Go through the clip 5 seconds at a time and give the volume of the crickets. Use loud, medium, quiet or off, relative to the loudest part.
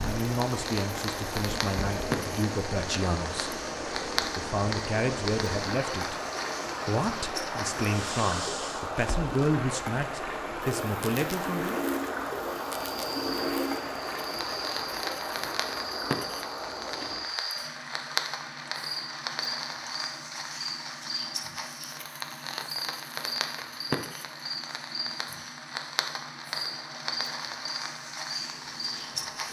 off, off, loud, loud, loud, loud.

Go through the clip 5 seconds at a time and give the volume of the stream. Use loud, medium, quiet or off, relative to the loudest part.
loud, loud, loud, medium, quiet, quiet.